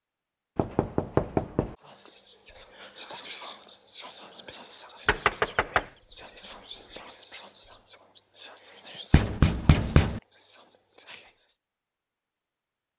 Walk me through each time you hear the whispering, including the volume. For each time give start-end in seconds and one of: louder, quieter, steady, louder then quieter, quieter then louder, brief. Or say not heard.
1.9-11.6 quieter.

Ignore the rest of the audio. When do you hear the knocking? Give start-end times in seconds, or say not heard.
0.6-1.8, 5.0-5.9, 9.1-10.2.